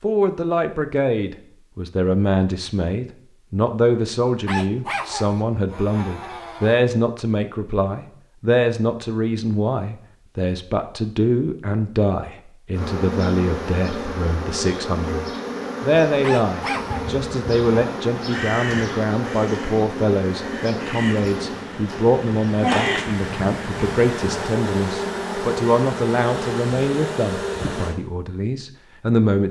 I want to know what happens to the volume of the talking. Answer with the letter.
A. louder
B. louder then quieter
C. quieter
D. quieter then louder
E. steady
E.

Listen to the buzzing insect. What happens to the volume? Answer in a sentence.
The volume of the buzzing insect stays about the same.